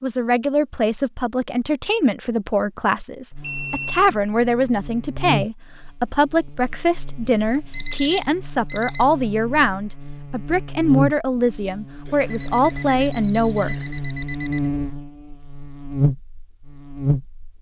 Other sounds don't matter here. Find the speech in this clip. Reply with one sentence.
The speech can be heard from 0.0 to 13.8 s.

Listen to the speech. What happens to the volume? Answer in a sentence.
The volume of the speech stays about the same.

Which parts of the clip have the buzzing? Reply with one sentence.
The buzzing can be heard from 3.3 to 17.4 s.